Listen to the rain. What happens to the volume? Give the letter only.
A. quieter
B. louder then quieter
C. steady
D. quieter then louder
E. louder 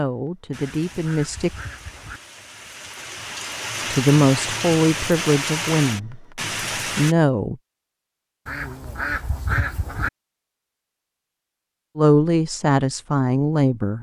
E.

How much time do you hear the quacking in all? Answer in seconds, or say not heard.
3 s.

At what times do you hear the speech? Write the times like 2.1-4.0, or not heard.
0.0-1.5, 3.9-6.2, 7.0-7.5, 11.9-13.9.